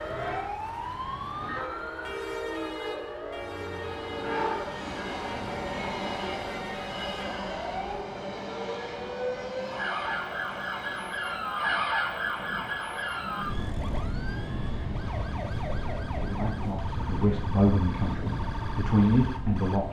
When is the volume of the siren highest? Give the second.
12 s.